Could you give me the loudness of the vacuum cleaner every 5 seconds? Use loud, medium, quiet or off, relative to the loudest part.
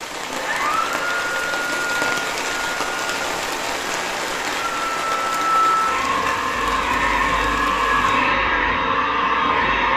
medium, loud.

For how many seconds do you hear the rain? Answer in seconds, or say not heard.
8 s.